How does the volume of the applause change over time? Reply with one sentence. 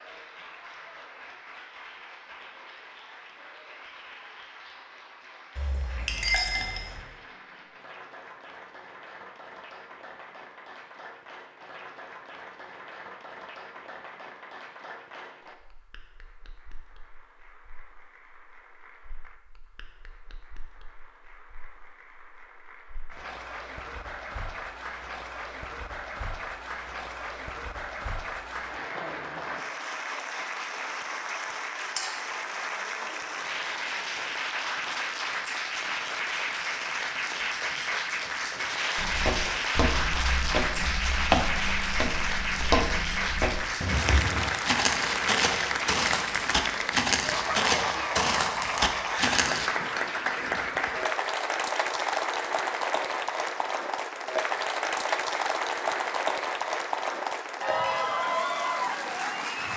The volume of the applause goes up.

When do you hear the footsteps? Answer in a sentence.
You can hear the footsteps from 39.0 to 49.7 s.